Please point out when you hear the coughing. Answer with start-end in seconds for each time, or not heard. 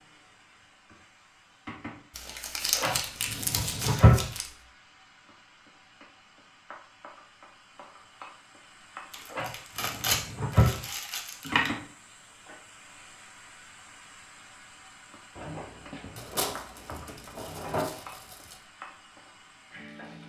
not heard.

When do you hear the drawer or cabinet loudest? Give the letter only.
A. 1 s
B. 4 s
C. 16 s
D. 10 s
B.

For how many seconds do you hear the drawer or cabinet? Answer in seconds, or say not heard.
6 s.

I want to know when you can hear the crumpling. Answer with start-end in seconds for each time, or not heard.
2.1-4.5, 9.1-11.8, 16.1-18.6.